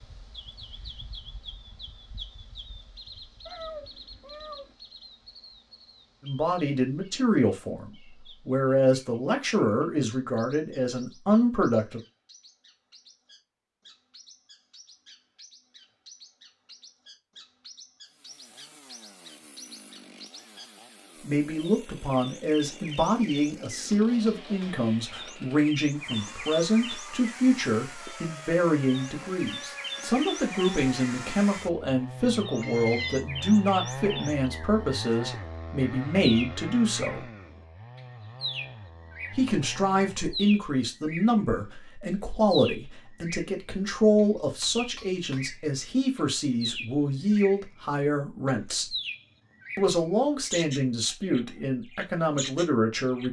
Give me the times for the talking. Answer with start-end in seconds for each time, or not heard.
6.2-12.0, 21.2-37.3, 39.3-49.0, 49.8-53.2.